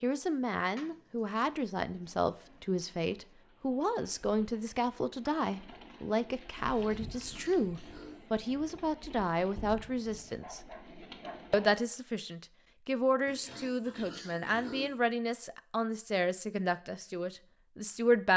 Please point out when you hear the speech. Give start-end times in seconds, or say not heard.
0.0-10.6, 11.5-18.3.